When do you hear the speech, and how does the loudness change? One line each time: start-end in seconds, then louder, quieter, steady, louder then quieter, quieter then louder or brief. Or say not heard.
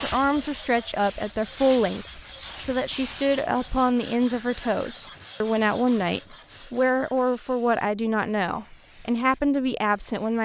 0.0-10.4 steady.